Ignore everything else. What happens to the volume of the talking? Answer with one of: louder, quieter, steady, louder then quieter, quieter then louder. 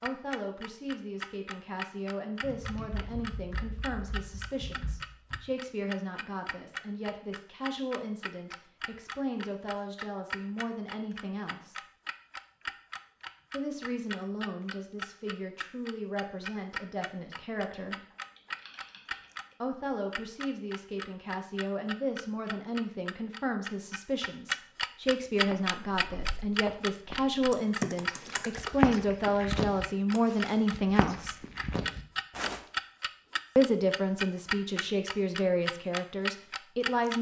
louder.